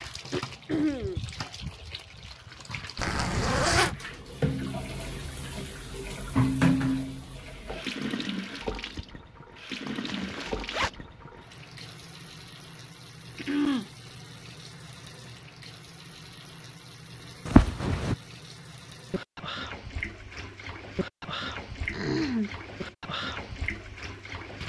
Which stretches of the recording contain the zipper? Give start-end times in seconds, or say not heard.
3.0-4.0, 9.8-10.9, 17.4-18.1.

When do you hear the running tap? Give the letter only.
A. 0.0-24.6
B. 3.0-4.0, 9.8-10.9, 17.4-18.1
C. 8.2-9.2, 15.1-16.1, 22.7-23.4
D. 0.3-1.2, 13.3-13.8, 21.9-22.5
A.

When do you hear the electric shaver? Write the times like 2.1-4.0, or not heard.
not heard.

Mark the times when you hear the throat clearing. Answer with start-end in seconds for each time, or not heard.
0.3-1.2, 13.3-13.8, 21.9-22.5.